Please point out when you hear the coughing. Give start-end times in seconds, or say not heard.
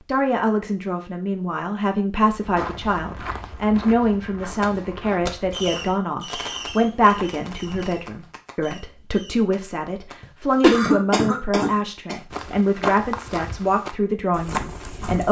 10.2-12.2.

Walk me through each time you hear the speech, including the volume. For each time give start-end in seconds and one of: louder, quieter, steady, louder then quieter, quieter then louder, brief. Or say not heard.
0.1-15.2 steady.